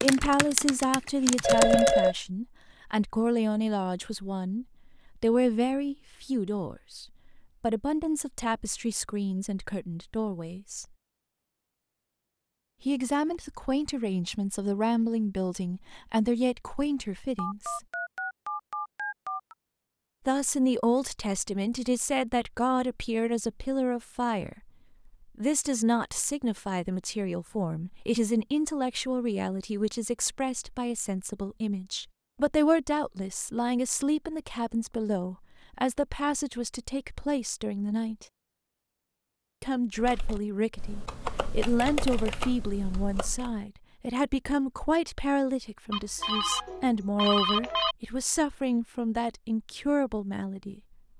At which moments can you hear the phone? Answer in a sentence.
The phone can be heard from 1.4 to 2.1 s, from 17.4 to 19.6 s and from 45.9 to 48.0 s.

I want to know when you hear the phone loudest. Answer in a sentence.
The loudest moment of the phone is at 2 seconds.